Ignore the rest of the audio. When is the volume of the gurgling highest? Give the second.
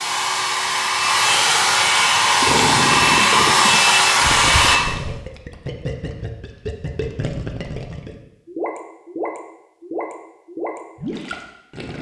3 s.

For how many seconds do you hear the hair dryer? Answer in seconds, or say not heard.
5 s.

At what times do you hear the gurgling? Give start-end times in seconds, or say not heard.
2.4-11.9.